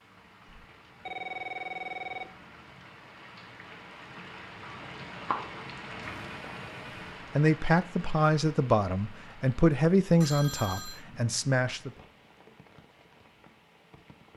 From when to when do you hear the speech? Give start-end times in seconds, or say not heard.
7.3-11.9.